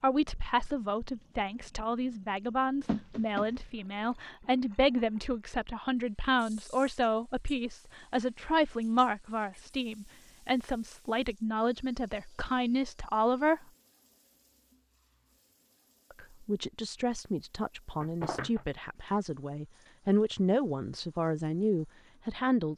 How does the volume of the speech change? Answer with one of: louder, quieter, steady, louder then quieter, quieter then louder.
steady.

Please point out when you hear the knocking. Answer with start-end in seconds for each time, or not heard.
2.9-3.5, 18.0-18.6.